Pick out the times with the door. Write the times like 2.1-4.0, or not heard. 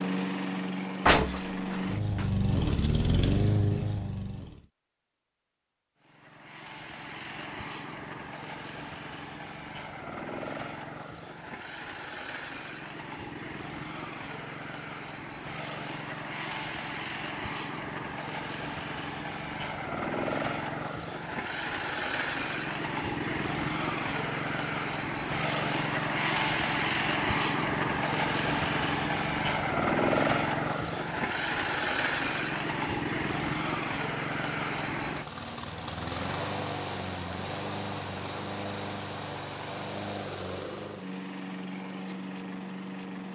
1.1-2.9.